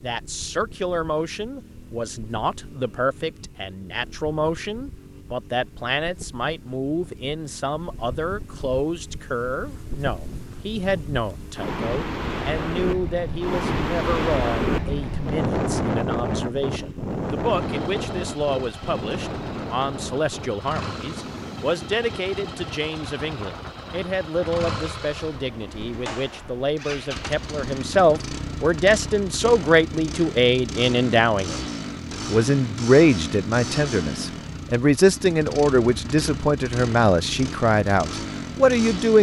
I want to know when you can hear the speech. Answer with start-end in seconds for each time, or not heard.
0.0-39.1.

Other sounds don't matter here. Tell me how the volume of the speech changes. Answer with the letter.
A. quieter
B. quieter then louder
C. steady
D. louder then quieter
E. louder
E.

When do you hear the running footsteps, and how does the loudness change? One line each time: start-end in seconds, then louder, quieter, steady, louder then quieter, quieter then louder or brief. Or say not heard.
not heard.